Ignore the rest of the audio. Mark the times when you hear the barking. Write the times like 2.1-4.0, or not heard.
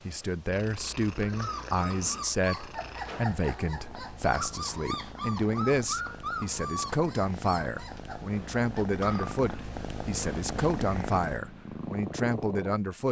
1.2-9.3.